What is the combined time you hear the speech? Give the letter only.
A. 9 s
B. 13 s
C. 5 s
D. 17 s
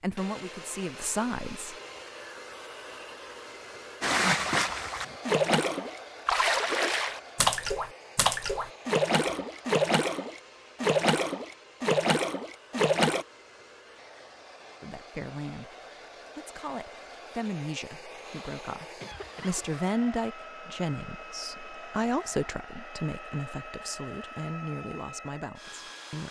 B.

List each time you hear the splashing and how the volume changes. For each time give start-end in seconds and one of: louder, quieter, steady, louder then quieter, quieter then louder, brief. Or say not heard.
4.0-13.2 steady.